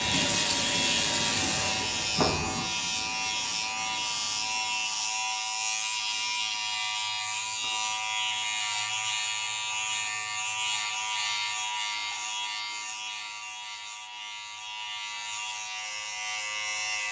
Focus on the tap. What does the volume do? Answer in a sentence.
The loudness of the tap goes down.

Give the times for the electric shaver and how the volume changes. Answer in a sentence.
The electric shaver can be heard from 0.0 to 17.0 s, getting quieter.